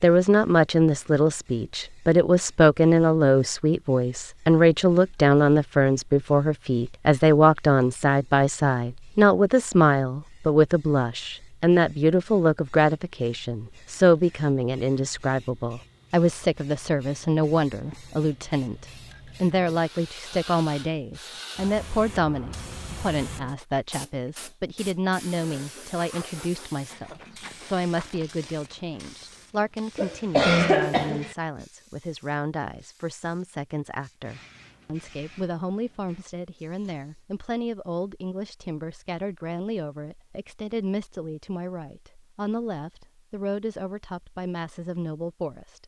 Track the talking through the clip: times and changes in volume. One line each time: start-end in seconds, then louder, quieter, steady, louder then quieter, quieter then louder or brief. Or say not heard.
0.0-45.8 quieter.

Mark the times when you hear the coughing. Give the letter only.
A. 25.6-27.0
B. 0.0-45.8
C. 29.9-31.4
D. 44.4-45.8
C.